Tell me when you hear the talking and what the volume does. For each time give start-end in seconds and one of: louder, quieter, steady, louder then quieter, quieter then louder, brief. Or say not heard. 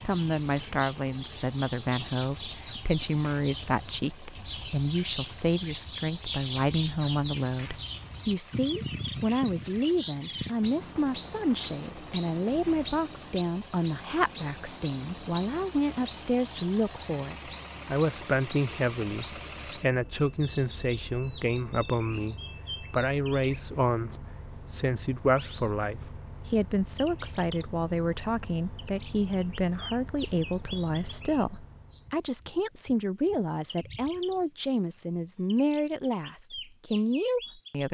0.1-37.8 steady.